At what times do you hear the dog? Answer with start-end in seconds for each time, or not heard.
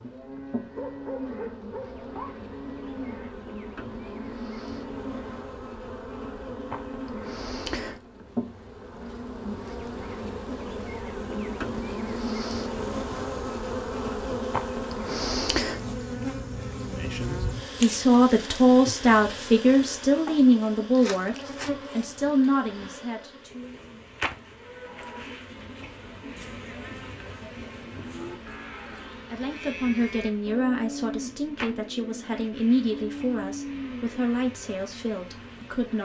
0.8-2.3.